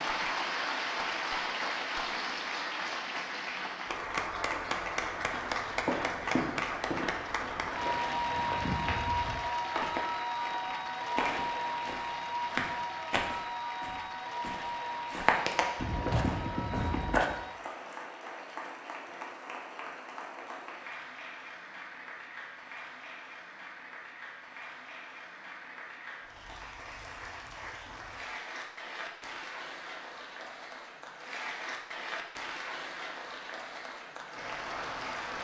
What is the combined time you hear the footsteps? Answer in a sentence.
The footsteps can be heard for 12 seconds in total.